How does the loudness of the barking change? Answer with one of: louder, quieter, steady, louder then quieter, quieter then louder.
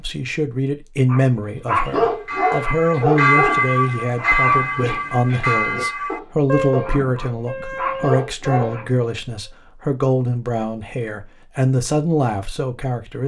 quieter then louder.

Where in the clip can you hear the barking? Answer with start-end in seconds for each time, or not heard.
1.1-8.8.